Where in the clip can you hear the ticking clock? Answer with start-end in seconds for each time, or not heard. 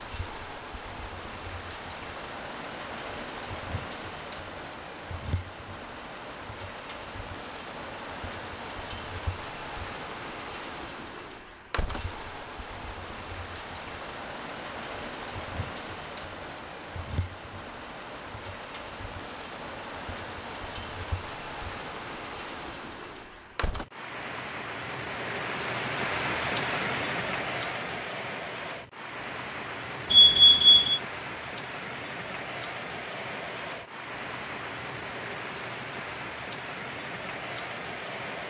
not heard.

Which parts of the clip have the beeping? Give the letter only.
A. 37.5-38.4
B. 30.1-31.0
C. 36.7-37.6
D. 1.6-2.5
B.